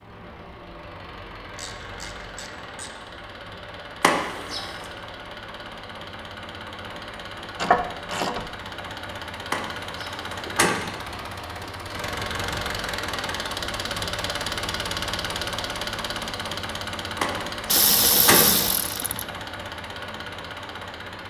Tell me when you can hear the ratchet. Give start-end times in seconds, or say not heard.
1.6-3.0, 7.5-8.5, 17.7-19.2.